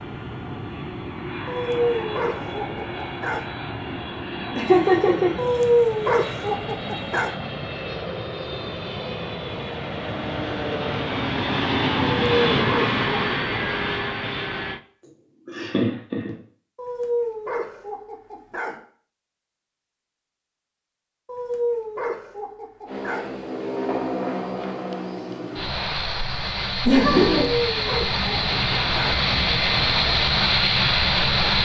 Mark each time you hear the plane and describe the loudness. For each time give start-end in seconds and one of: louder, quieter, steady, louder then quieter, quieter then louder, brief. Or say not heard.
0.0-14.8 louder
22.9-31.6 louder.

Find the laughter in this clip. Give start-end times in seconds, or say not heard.
4.5-5.5, 15.4-16.4, 26.9-27.5.